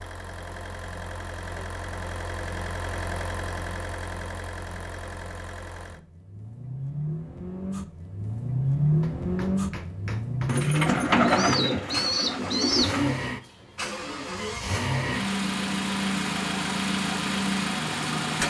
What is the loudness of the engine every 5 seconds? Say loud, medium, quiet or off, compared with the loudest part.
medium, loud, loud, loud.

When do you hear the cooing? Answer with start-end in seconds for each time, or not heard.
10.4-13.2.